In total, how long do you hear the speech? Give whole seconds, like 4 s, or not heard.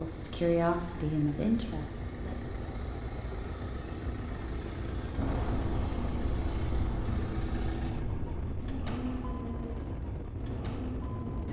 2 s.